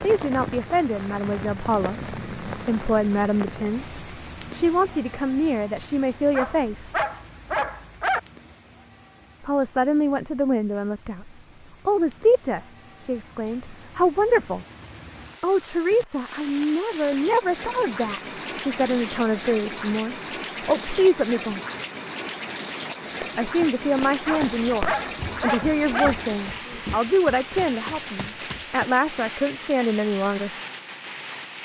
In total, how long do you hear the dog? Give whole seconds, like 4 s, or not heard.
4 s.